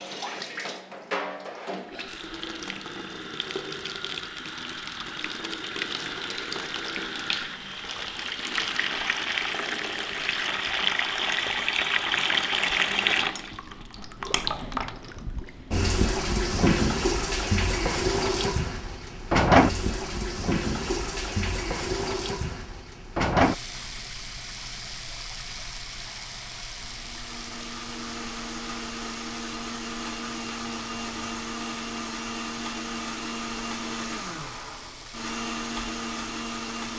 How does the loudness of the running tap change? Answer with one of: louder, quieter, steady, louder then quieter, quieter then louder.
louder then quieter.